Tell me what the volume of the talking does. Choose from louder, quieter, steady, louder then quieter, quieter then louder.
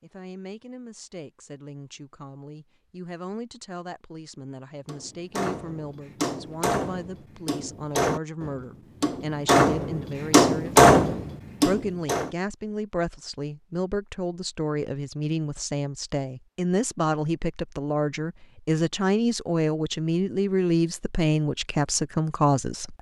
louder.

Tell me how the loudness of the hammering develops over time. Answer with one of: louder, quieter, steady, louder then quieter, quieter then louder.
louder.